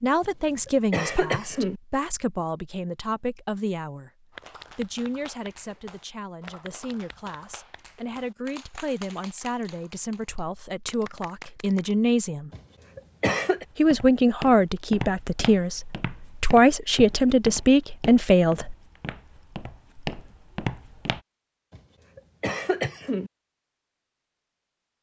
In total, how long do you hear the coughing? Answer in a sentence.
You can hear the coughing for 4 seconds altogether.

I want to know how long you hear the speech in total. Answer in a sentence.
You can hear the speech for 17 seconds altogether.